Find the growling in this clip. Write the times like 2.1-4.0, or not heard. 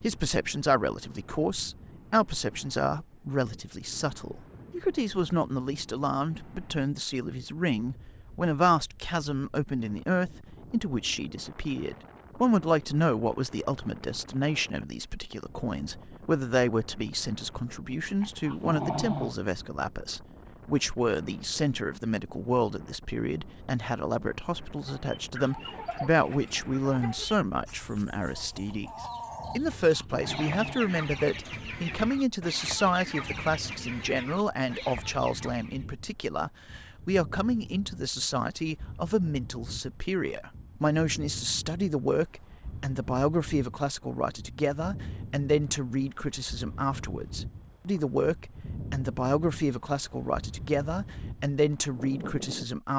18.2-19.4, 29.8-30.9.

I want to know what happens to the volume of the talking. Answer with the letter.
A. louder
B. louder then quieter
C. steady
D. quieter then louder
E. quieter
C.